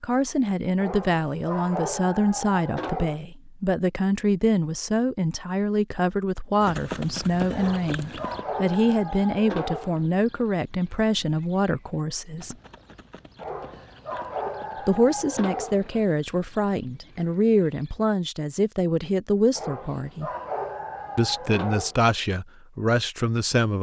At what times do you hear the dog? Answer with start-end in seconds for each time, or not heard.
0.8-3.2, 7.5-10.1, 13.4-16.1, 19.6-21.9.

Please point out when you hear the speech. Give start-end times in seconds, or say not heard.
0.0-12.6, 14.8-20.3, 21.1-23.7.